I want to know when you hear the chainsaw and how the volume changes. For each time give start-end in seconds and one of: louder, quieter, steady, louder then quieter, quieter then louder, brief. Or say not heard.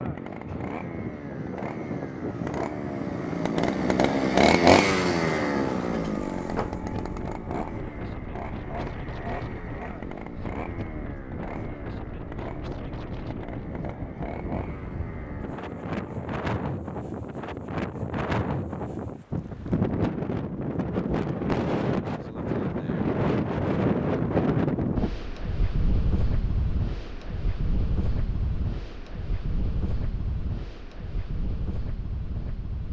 0.0-16.4 louder then quieter.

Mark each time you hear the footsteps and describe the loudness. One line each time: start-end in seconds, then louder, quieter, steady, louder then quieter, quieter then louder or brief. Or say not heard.
not heard.